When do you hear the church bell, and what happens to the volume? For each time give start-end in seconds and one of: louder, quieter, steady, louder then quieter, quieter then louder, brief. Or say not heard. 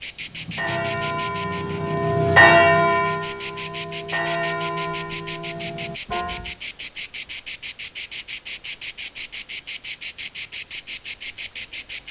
0.2-6.5 louder then quieter.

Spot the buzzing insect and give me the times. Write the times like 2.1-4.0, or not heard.
0.0-12.0.